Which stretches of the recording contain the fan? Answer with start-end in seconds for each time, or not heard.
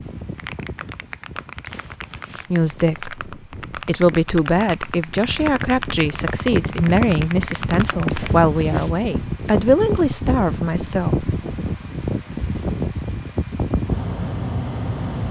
0.0-15.2.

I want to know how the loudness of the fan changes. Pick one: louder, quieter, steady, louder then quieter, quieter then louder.
louder.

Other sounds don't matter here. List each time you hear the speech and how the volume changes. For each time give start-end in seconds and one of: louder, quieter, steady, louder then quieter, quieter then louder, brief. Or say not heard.
2.5-11.2 steady.